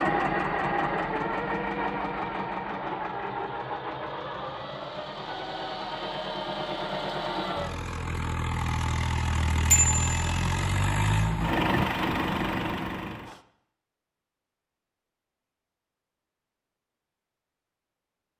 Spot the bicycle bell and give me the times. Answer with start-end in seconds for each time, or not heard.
9.7-10.2.